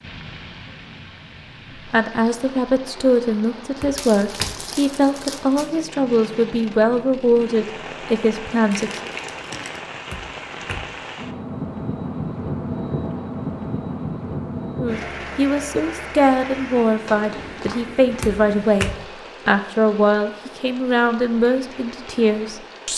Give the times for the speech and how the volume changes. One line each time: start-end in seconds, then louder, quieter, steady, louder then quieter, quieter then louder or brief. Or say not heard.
1.9-9.0 steady
14.8-22.9 steady.